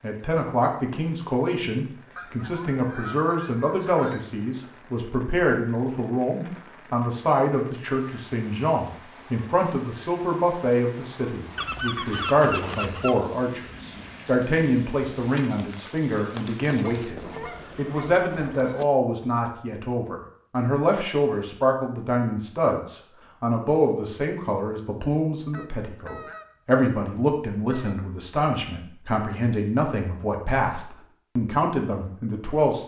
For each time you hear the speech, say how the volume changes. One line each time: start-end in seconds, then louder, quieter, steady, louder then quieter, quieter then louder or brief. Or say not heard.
0.0-32.8 steady.